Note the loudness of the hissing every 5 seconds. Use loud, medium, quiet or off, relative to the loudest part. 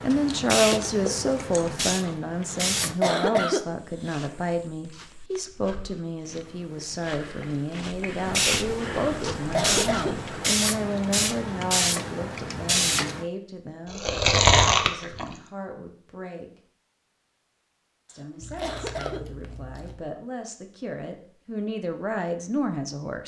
loud, loud, loud, off, off.